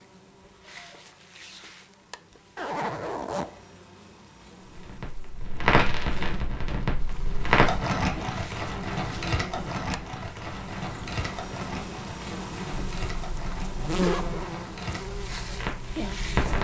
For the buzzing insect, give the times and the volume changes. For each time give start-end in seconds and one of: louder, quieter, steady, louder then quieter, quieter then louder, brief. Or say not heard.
0.0-16.6 louder.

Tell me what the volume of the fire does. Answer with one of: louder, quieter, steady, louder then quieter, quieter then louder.
quieter.